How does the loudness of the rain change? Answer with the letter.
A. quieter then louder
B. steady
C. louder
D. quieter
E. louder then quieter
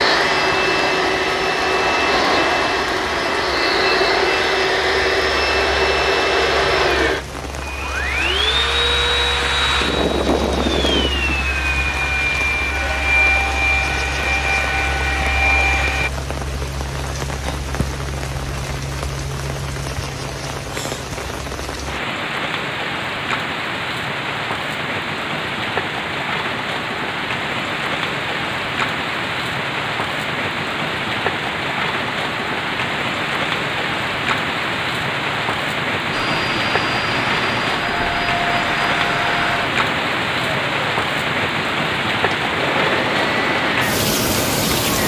C.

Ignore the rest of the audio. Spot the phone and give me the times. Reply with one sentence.
You can't hear the phone here.